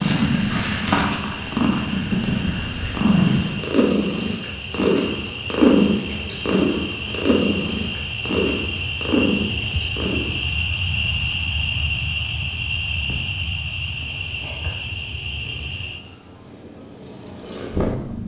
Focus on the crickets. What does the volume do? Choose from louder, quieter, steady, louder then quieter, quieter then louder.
louder then quieter.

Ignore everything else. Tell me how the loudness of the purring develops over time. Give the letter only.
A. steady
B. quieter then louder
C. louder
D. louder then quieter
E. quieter
E.